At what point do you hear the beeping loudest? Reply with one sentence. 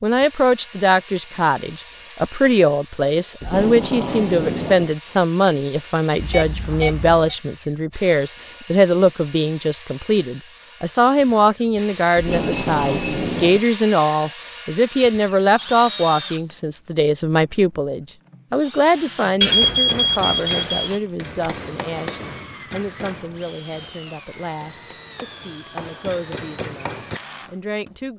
The volume of the beeping peaks at 20 seconds.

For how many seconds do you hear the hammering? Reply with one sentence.
The hammering can be heard for 8 seconds in total.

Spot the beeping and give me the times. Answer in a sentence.
You can hear the beeping from 6.2 to 7.3 s, from 12.3 to 13.1 s and from 19.4 to 20.9 s.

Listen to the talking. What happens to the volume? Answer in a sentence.
The loudness of the talking goes down.